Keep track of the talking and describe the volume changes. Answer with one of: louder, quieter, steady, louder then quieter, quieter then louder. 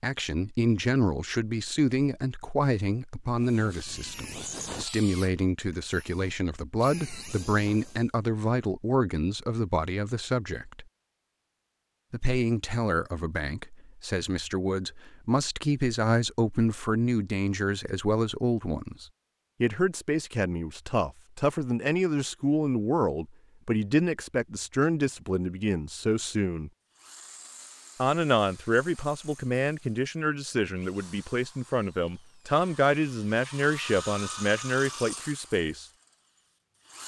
steady.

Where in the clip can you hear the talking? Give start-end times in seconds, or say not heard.
0.0-10.8, 12.1-26.7, 28.0-35.9.